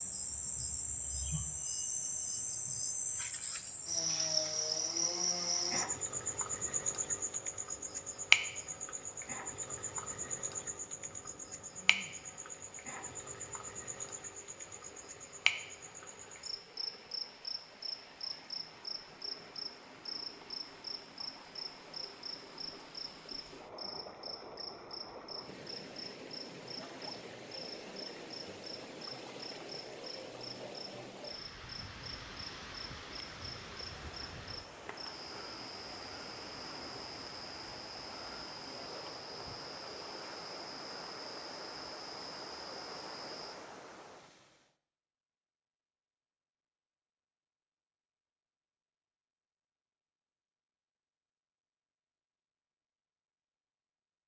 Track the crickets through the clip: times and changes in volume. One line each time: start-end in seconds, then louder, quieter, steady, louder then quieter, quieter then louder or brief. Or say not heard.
0.0-43.6 quieter.